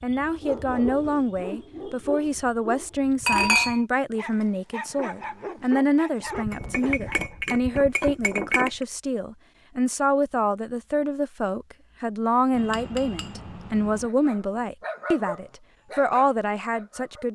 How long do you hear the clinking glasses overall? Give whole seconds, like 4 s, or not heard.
5 s.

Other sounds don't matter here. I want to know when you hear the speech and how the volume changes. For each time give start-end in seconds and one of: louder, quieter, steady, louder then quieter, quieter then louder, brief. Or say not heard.
0.0-17.3 steady.